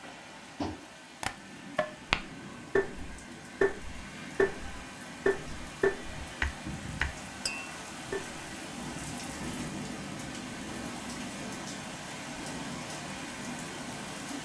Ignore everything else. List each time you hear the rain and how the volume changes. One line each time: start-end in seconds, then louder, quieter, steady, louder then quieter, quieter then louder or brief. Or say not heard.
0.0-14.4 louder.